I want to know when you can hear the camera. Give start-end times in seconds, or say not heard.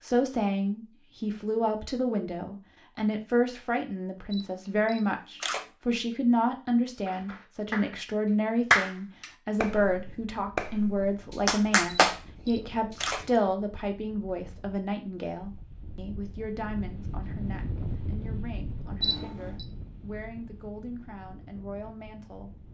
4.3-5.7, 11.9-13.2, 19.0-19.6.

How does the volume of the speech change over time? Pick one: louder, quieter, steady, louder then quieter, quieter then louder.
quieter.